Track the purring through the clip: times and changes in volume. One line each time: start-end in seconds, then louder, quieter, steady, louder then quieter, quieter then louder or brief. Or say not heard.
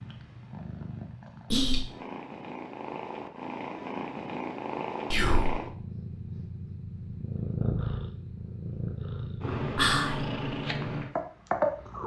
0.0-12.0 louder.